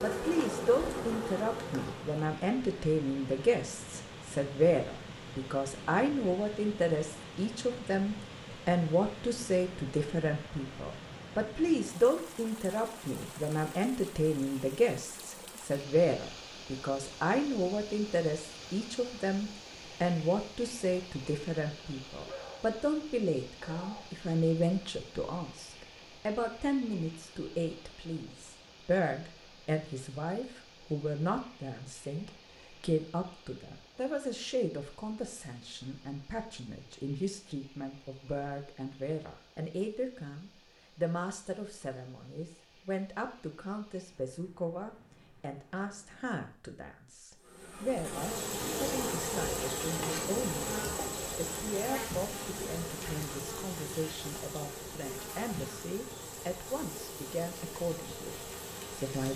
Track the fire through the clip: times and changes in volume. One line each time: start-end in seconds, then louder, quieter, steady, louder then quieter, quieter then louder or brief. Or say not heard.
not heard.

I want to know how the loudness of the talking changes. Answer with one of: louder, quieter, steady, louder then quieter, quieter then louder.
quieter.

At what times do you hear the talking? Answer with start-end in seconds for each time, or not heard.
0.0-59.3.